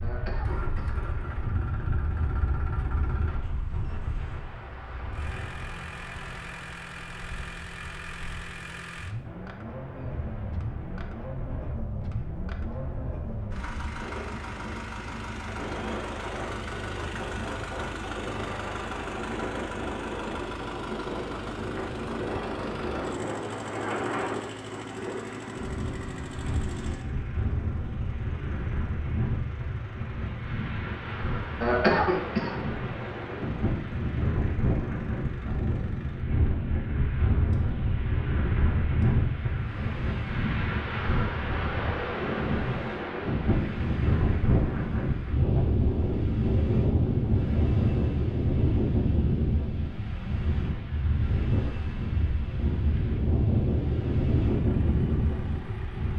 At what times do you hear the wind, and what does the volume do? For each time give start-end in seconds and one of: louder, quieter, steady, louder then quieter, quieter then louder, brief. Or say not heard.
0.0-56.1 louder.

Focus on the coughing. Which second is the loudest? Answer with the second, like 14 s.
32 s.